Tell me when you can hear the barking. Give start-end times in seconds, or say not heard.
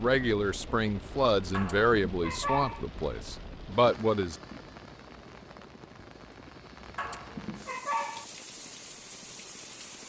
1.5-2.9, 7.0-8.2.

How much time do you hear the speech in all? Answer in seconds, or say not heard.
4 s.